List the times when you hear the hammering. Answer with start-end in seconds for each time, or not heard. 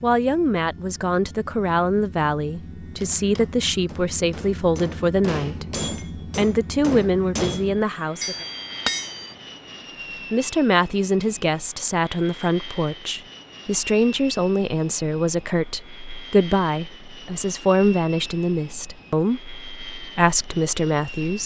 2.9-9.3.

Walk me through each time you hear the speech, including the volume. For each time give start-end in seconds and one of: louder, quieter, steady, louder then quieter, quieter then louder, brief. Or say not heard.
0.0-8.4 steady
10.3-21.4 steady.